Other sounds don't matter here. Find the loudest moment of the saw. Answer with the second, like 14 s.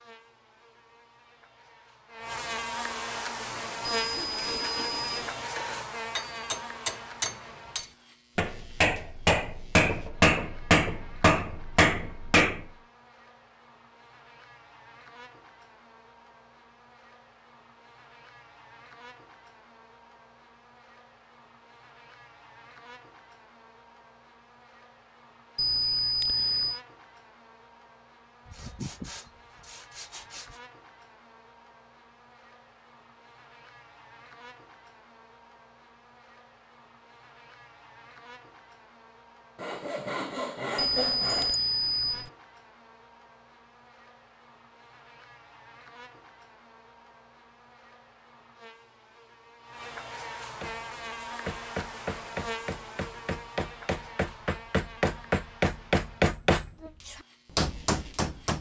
41 s.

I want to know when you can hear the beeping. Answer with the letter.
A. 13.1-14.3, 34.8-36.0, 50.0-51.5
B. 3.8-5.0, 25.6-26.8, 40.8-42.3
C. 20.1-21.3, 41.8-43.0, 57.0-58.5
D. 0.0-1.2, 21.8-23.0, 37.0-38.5
B.